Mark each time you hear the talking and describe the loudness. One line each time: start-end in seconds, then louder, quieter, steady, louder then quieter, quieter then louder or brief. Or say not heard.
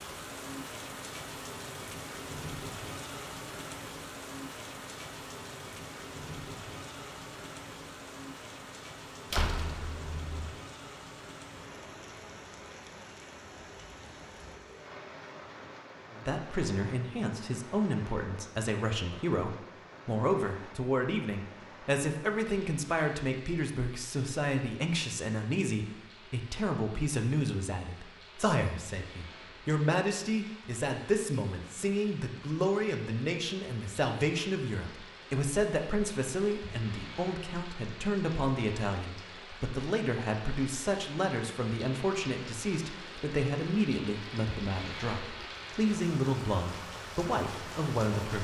16.1-48.4 steady.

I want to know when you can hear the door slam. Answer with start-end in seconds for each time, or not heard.
9.3-10.5.